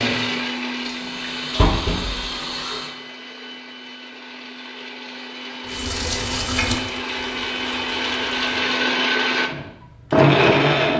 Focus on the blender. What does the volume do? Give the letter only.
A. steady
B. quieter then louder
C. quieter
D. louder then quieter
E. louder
B.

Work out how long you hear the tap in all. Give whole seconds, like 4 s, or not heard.
6 s.